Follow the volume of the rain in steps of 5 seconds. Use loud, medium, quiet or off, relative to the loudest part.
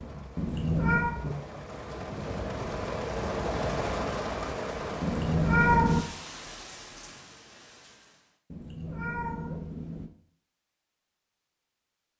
loud, medium, off.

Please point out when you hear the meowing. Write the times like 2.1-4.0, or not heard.
0.3-1.1, 5.0-6.0, 8.5-10.1.